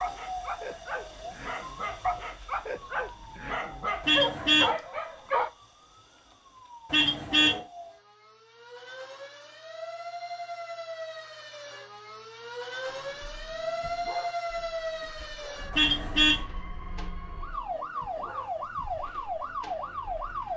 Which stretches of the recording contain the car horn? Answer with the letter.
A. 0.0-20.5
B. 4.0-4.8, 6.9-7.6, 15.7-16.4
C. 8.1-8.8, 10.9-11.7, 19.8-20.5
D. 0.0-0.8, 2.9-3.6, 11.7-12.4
B.